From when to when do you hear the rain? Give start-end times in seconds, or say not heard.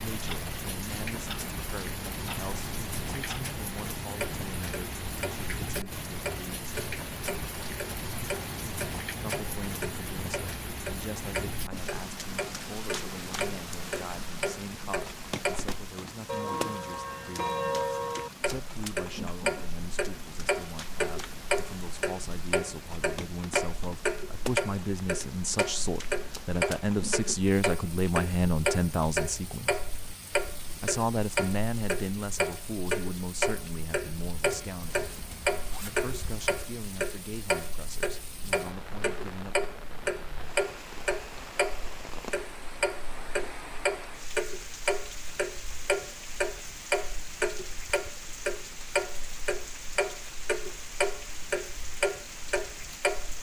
0.0-53.3.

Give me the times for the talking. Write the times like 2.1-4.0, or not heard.
0.0-6.7, 9.2-29.8, 30.8-35.1, 35.8-39.5.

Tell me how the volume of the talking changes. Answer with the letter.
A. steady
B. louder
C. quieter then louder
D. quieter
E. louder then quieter
E.